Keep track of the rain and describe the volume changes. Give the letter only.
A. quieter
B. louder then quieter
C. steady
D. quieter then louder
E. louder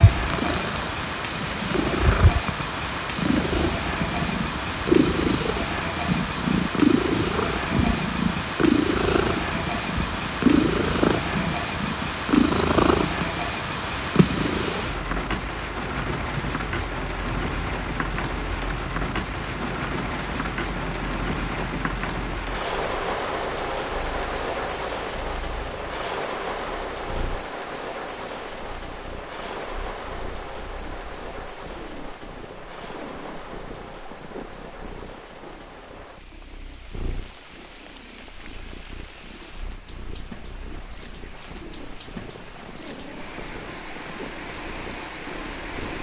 A.